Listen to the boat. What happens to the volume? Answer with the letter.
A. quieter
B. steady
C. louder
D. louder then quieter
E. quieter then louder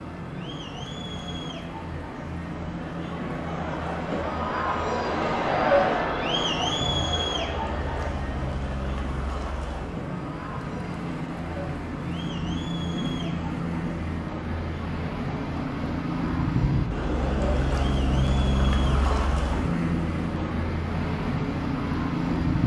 C.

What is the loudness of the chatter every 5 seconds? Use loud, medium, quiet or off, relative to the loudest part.
medium, loud, quiet, quiet, quiet.